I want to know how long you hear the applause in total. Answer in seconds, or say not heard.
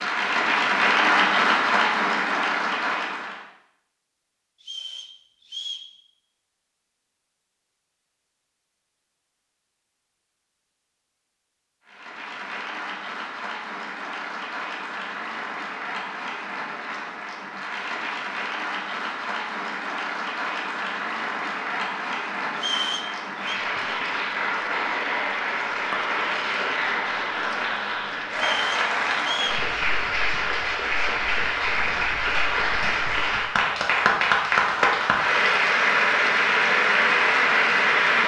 30 s.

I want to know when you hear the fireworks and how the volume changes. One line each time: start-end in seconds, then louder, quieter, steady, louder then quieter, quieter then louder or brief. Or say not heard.
not heard.